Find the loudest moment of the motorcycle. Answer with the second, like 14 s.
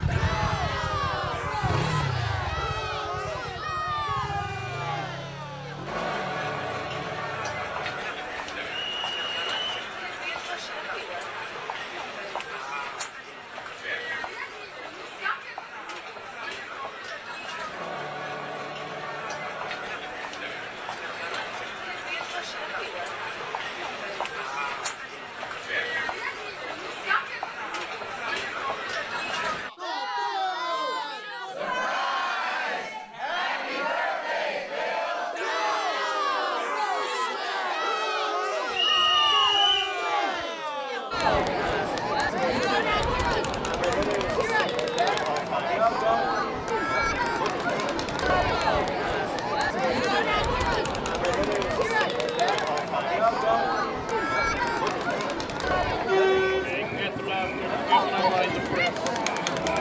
2 s.